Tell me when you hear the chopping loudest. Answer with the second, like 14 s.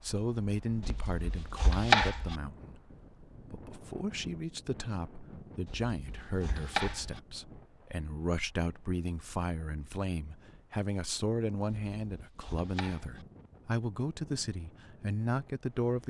2 s.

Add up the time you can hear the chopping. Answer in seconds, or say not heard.
5 s.